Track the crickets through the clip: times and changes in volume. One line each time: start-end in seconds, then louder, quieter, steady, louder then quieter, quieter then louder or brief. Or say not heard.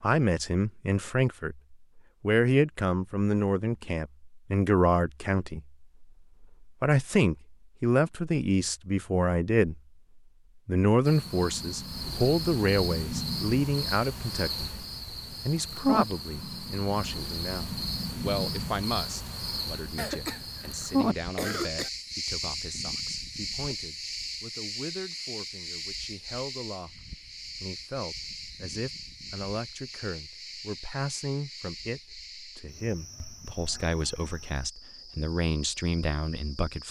11.1-36.8 quieter.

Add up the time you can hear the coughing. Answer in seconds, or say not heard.
2 s.